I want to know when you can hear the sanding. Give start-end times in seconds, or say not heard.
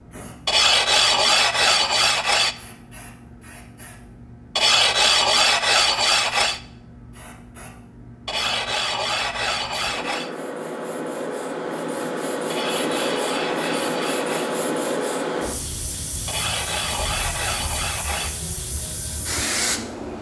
0.5-2.5, 4.5-6.6, 8.2-10.3, 12.5-14.6, 16.2-18.4.